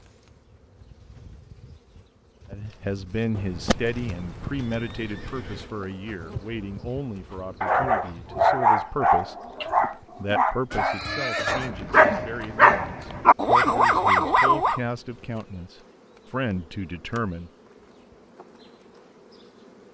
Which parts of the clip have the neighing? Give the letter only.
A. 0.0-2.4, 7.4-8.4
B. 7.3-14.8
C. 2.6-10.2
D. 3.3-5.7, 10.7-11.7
D.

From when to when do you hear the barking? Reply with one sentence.
The barking can be heard from 7.3 to 14.8 s.